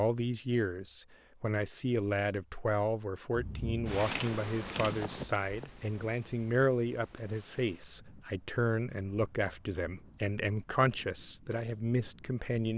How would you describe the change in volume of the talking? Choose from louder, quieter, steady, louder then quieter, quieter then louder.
steady.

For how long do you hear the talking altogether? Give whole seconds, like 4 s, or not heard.
13 s.